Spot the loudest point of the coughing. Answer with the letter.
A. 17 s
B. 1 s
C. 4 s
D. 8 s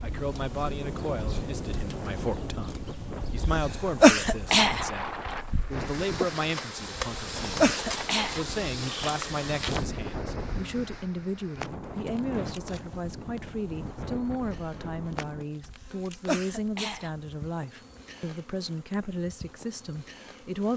C.